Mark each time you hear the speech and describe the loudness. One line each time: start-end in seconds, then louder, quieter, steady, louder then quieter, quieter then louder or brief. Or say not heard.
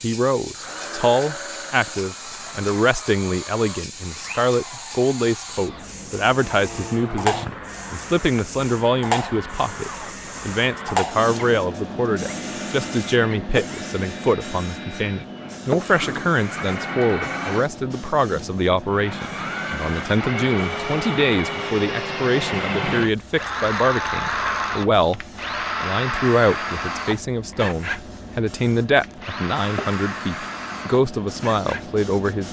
0.0-32.4 steady.